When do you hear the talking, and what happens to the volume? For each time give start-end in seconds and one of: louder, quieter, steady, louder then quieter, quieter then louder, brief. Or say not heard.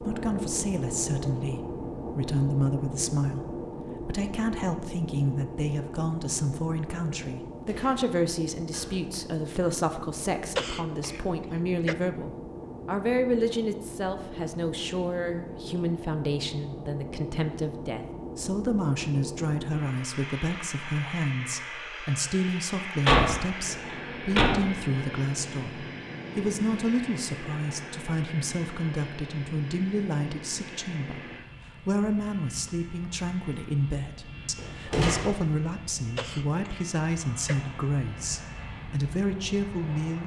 0.0-40.2 steady.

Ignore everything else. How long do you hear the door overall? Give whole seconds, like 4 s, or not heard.
4 s.